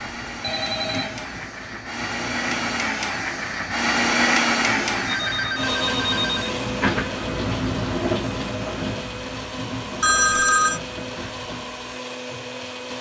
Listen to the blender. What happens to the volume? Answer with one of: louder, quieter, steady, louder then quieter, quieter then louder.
louder then quieter.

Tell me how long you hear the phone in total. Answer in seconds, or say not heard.
3 s.